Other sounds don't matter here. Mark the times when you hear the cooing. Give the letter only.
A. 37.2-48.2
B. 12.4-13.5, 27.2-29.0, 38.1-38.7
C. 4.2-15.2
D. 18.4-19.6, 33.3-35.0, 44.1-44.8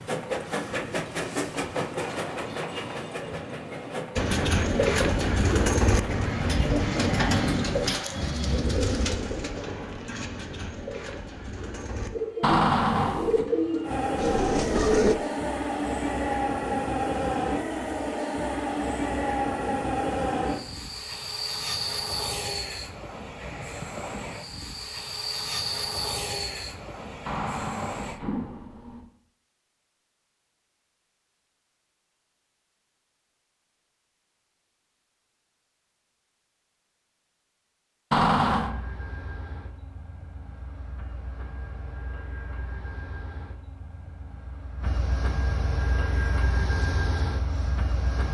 C.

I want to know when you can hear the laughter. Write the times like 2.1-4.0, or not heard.
not heard.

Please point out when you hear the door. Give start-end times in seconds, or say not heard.
12.4-13.5, 27.2-29.0, 38.1-38.7.